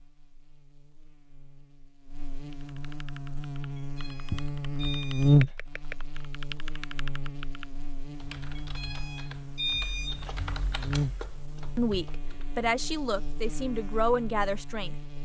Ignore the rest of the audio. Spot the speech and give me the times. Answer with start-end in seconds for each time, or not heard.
11.8-15.2.